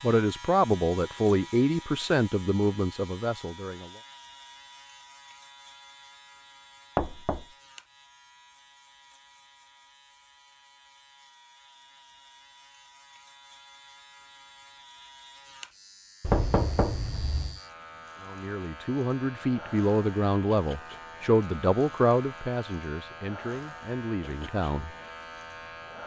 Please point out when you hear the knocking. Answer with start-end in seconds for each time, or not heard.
7.0-7.5, 16.2-17.6.